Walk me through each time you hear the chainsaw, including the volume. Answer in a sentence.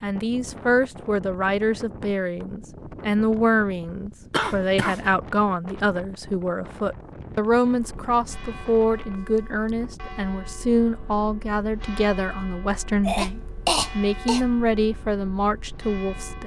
You can't hear the chainsaw here.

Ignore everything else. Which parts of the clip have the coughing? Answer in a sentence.
The coughing can be heard from 4.3 to 5.1 s and from 13.1 to 14.4 s.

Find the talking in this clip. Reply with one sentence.
You can hear the talking from 0.0 to 16.4 s.